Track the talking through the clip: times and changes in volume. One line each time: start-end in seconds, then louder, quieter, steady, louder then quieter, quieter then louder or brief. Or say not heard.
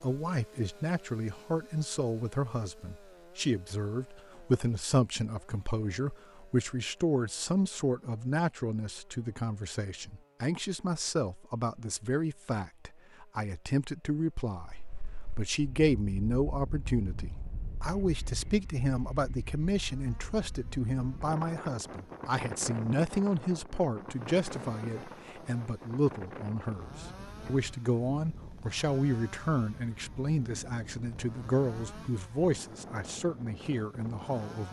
0.0-34.6 steady.